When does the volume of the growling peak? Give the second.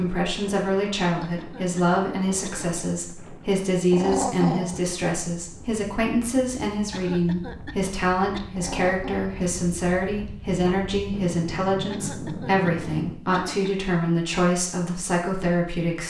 4 s.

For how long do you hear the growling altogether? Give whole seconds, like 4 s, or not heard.
2 s.